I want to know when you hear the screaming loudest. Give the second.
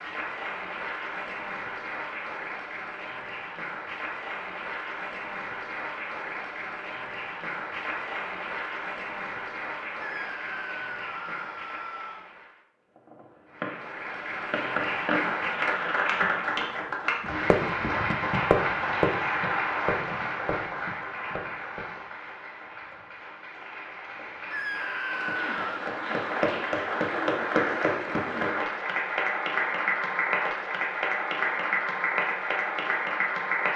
25 s.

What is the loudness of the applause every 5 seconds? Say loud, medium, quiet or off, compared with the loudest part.
medium, medium, medium, loud, medium, loud, loud.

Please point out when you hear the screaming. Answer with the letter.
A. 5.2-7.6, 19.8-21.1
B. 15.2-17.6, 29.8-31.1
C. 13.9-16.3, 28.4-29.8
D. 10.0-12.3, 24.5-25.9
D.